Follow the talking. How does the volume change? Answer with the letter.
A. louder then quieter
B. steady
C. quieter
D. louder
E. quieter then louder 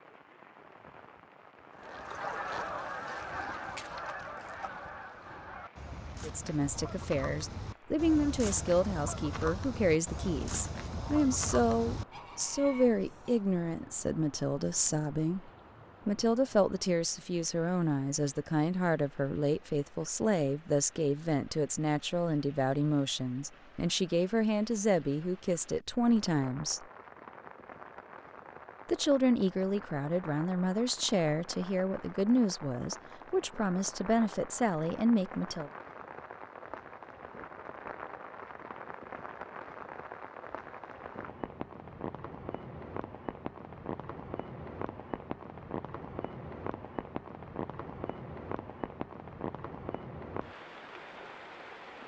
B.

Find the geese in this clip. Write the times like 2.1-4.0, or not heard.
1.8-13.3.